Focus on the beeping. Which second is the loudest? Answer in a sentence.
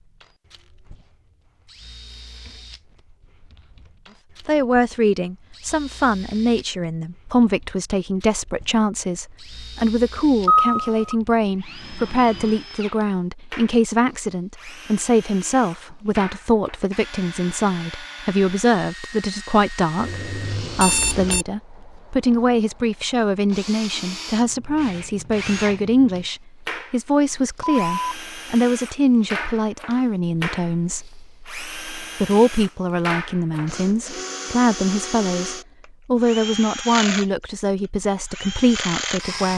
The loudest moment of the beeping is at 11 seconds.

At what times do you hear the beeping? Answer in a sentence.
The beeping can be heard from 10.4 to 11.2 s, from 20.0 to 21.4 s and from 27.6 to 28.1 s.